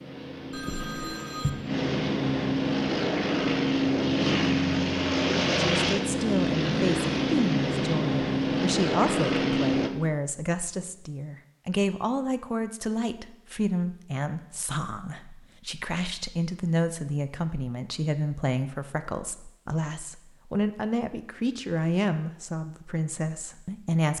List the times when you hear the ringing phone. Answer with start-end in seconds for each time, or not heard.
0.5-1.5.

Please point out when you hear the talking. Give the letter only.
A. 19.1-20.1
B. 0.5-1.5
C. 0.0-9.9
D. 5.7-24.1
D.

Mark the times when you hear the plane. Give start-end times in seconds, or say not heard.
0.0-9.9.